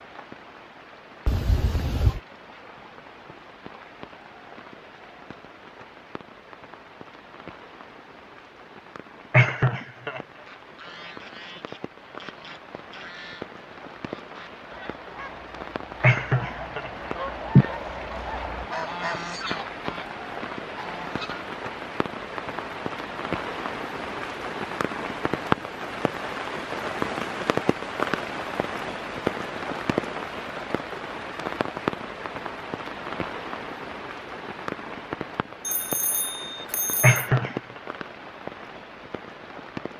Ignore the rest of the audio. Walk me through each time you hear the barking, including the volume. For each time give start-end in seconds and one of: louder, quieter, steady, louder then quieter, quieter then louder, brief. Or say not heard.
not heard.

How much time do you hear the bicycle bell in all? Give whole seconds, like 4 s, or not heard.
3 s.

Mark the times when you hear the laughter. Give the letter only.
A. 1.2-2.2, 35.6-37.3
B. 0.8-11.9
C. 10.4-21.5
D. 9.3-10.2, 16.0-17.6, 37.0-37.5
D.